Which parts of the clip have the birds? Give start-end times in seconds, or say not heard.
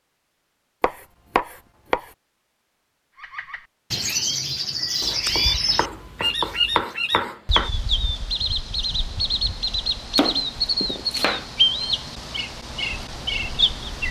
3.2-14.0.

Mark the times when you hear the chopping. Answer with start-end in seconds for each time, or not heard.
0.8-2.1, 5.0-7.7, 10.2-11.4.